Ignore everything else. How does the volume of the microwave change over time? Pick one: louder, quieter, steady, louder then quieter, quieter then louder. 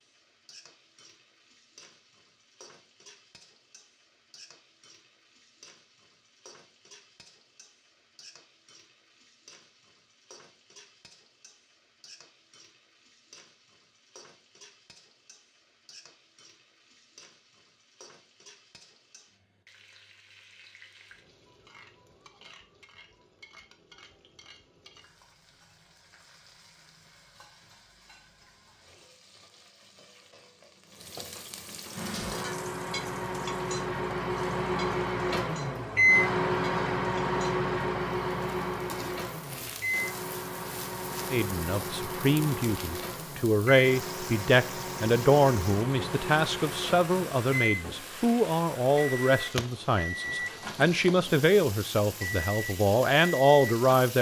quieter.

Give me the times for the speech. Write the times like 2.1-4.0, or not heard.
41.3-54.1.